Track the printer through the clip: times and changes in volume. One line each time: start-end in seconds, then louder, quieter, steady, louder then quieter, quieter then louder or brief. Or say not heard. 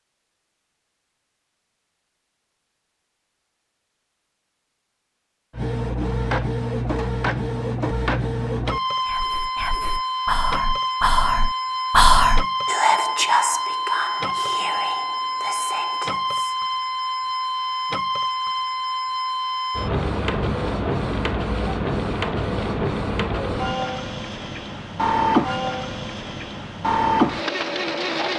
5.5-28.3 steady.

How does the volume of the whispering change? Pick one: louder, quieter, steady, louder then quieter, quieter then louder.
louder then quieter.